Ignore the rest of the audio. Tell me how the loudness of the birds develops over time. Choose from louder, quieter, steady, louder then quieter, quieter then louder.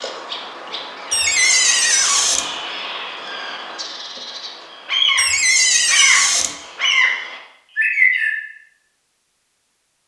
louder.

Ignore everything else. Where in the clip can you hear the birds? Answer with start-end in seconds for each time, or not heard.
0.0-8.3.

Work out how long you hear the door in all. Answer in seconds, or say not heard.
3 s.